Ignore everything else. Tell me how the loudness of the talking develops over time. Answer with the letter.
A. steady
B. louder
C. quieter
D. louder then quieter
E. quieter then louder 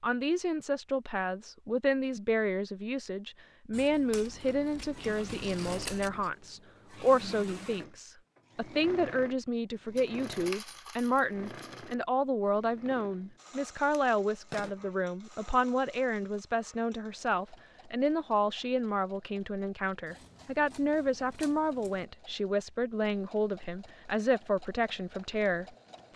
A.